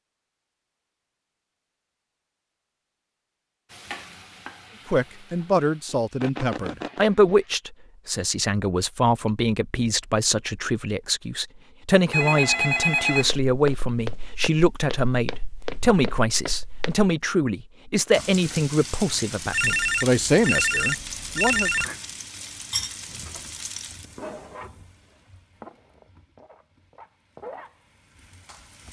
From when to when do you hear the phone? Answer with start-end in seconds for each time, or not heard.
6.2-7.0, 12.1-13.3, 19.5-21.9.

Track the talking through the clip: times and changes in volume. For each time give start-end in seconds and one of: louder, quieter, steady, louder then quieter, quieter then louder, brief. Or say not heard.
4.8-21.7 steady.